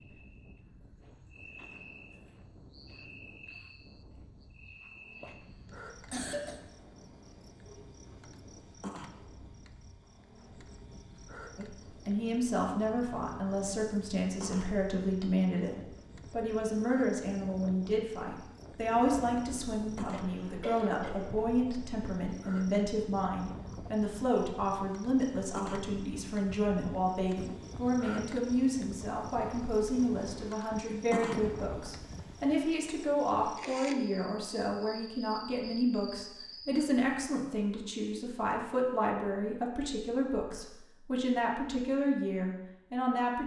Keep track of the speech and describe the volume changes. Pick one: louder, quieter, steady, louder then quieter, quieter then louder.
steady.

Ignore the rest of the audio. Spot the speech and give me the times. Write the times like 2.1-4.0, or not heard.
11.6-43.4.